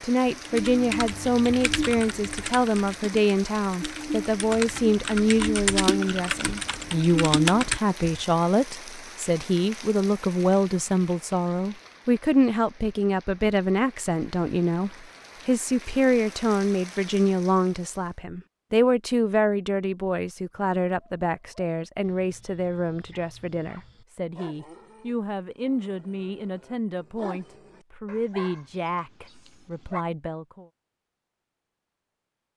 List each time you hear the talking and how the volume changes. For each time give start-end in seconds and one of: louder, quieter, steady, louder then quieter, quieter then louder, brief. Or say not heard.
0.0-30.6 quieter.